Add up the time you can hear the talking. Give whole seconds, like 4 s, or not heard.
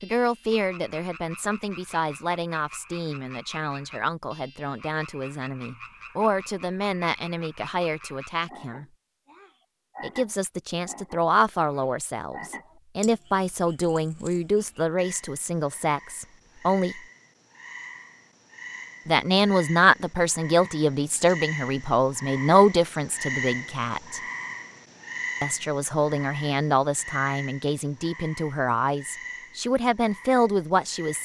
27 s.